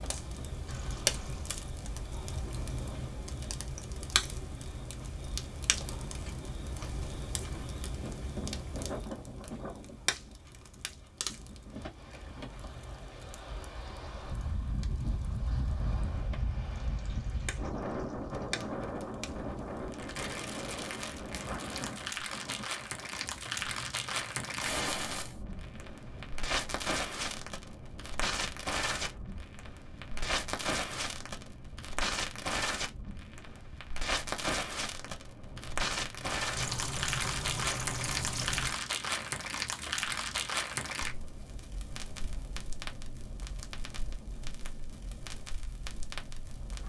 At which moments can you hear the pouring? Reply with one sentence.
The pouring can be heard from 0.7 to 1.6 s, from 16.8 to 18.6 s and from 36.5 to 38.8 s.